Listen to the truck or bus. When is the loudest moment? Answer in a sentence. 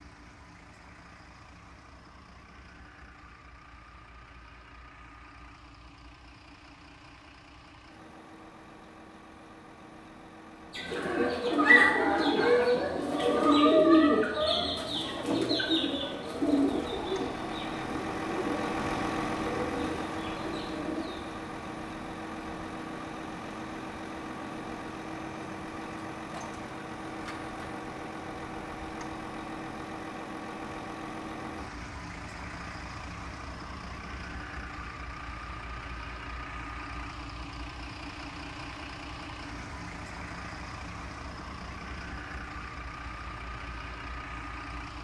The loudest moment of the truck or bus is at 19 seconds.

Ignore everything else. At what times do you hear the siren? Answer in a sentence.
The siren can't be heard in this clip.